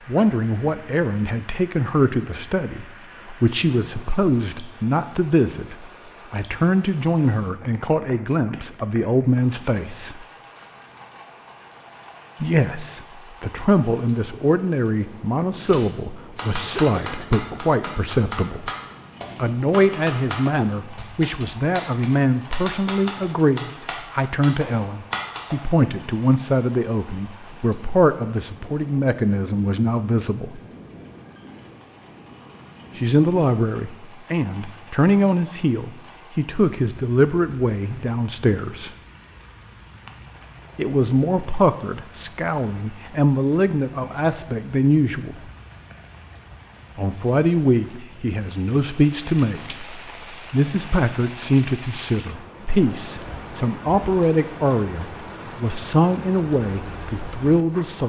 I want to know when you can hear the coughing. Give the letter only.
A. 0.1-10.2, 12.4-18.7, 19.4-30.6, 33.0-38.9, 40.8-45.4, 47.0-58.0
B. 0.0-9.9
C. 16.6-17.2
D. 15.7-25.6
C.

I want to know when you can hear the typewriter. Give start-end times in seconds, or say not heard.
15.7-25.6.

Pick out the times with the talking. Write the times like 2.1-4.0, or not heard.
0.1-10.2, 12.4-18.7, 19.4-30.6, 33.0-38.9, 40.8-45.4, 47.0-58.0.